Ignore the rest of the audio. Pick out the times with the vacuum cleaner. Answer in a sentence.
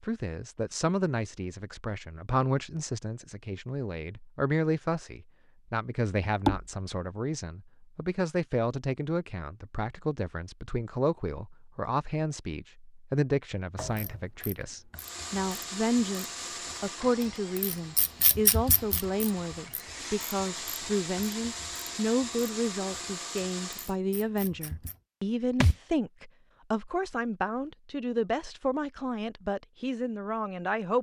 You can hear the vacuum cleaner from 14.9 to 23.9 s.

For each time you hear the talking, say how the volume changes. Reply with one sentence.
You can hear the talking from 0.0 to 30.9 s, at a steady volume.